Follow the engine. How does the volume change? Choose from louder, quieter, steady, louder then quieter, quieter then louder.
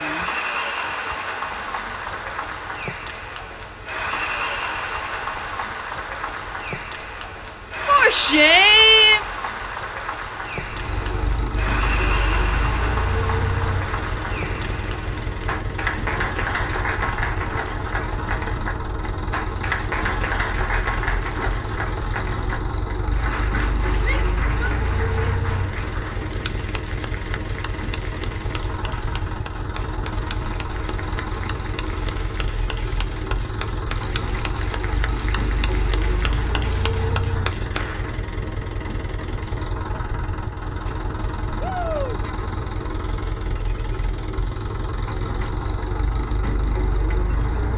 louder.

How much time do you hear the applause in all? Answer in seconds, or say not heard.
38 s.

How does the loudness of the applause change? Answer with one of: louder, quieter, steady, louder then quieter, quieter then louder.
quieter.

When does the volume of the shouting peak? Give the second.
9 s.